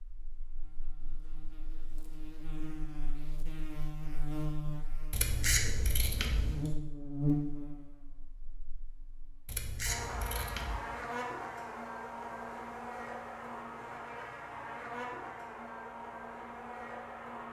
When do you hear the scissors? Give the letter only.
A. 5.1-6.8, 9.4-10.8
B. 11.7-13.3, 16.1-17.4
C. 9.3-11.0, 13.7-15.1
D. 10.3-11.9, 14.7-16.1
A.